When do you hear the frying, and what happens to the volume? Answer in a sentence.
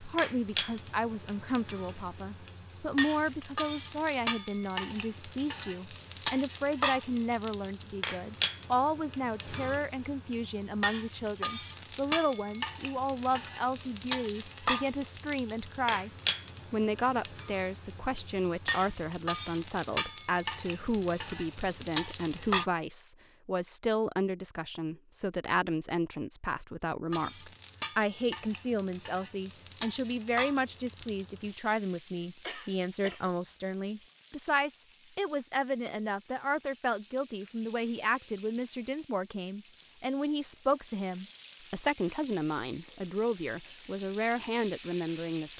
You can hear the frying from 0.0 to 22.6 s, at a steady volume; and from 27.1 to 45.5 s, getting quieter then louder.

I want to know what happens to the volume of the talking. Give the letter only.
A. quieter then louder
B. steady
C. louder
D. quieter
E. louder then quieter
B.